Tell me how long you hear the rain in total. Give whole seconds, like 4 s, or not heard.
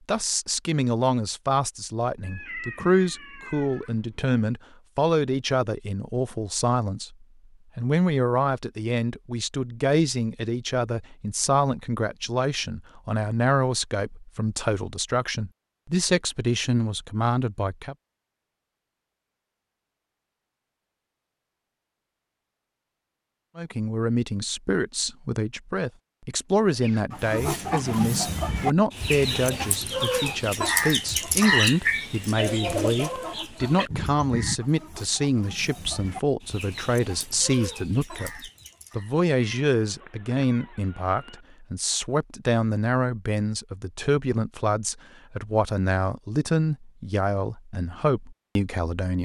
not heard.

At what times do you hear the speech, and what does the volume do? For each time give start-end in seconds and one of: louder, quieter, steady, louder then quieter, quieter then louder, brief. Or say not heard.
0.1-17.9 steady
23.6-49.1 steady.